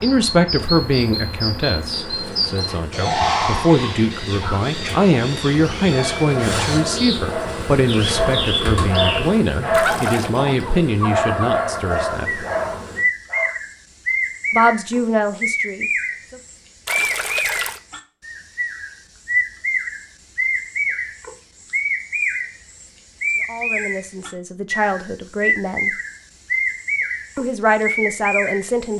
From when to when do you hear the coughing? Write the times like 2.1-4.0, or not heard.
not heard.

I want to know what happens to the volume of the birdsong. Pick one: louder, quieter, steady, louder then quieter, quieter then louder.
steady.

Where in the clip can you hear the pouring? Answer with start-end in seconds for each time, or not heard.
9.7-10.3, 16.9-17.8.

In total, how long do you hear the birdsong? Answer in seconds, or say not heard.
29 s.